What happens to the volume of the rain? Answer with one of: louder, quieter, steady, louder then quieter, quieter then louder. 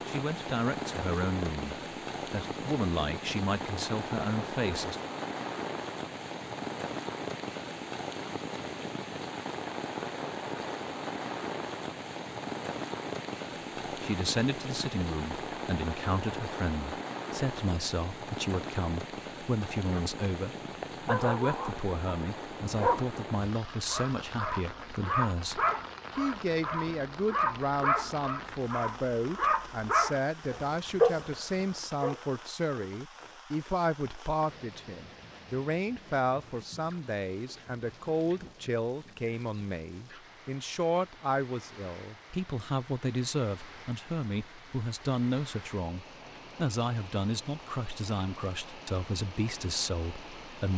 quieter.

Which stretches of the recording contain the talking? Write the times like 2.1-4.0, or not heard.
0.1-5.0, 13.8-50.7.